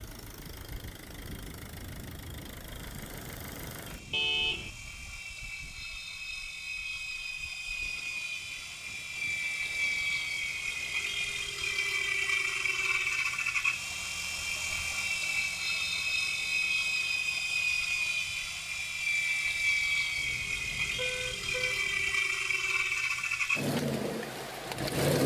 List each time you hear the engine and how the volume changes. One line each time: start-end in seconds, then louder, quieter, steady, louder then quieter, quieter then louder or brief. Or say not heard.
0.0-25.2 louder.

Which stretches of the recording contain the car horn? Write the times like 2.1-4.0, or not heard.
4.1-4.7, 20.1-22.2.